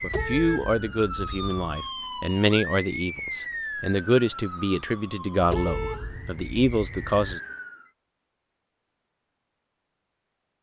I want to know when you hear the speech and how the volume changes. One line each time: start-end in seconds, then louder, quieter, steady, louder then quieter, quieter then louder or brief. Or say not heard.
0.0-7.4 steady.